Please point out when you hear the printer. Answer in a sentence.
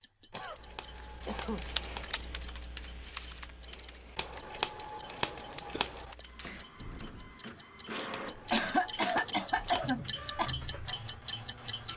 The printer can be heard from 6.2 to 11.9 s.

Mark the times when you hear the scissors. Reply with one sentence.
You can hear the scissors from 0.3 to 2.2 s, from 4.2 to 6.2 s and from 8.1 to 9.9 s.